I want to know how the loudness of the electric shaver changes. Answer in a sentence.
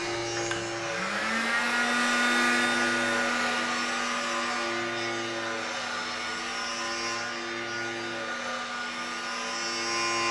The loudness of the electric shaver stays about the same.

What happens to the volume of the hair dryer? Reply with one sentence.
The volume of the hair dryer goes down.